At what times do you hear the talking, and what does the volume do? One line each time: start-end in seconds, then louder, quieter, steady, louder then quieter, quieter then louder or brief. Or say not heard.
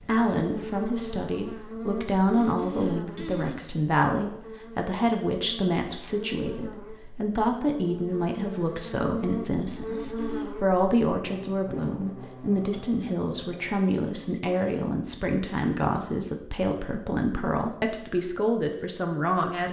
0.0-19.6 steady.